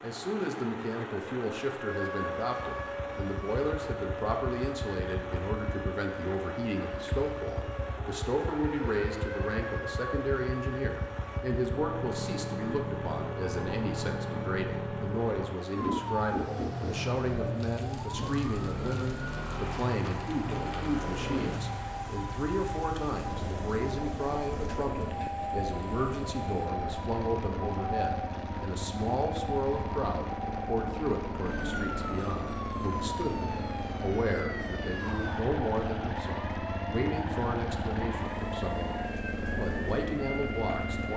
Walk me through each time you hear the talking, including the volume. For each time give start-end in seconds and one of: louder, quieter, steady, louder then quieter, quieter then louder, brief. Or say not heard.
0.0-41.1 steady.